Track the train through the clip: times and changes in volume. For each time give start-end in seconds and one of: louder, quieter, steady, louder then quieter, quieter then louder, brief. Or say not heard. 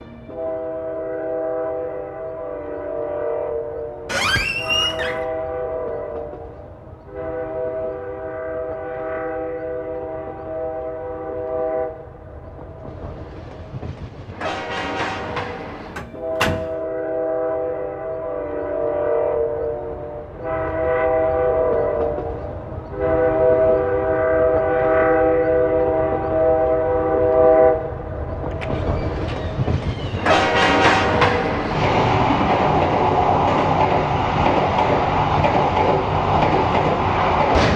0.0-37.7 louder.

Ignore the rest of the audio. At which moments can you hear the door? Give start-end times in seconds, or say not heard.
4.0-5.2, 15.9-16.7, 28.5-30.4.